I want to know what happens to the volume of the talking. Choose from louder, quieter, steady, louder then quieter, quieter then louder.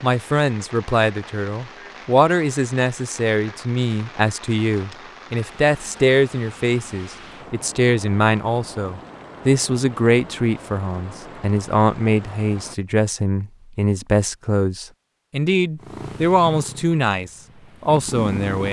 steady.